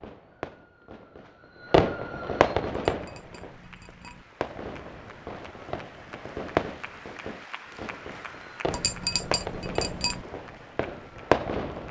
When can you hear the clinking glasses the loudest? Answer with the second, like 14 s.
9 s.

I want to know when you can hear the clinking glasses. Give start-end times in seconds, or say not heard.
2.9-4.2, 8.7-10.2.